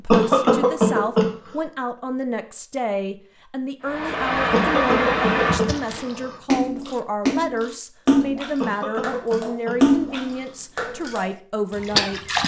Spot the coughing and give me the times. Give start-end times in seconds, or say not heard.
0.1-1.3, 4.5-6.3, 8.6-10.5.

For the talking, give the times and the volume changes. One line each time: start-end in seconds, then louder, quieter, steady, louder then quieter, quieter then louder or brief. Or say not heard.
0.0-12.4 steady.